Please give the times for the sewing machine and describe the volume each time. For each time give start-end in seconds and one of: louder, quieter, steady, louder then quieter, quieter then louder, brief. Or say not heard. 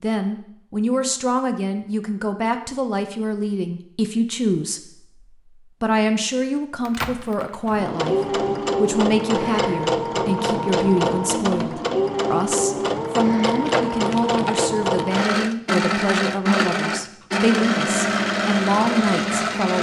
7.8-19.7 steady.